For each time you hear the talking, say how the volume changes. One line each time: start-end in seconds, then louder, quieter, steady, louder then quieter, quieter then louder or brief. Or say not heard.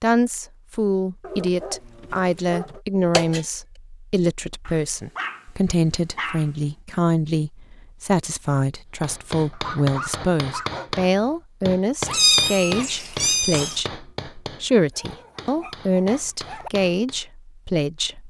0.0-18.2 steady.